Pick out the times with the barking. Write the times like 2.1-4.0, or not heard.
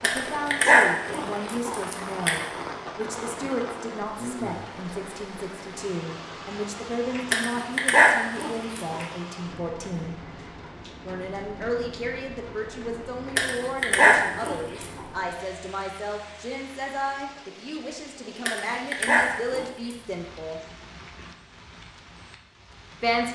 0.0-2.4, 7.3-9.0, 13.3-15.0, 18.4-19.9.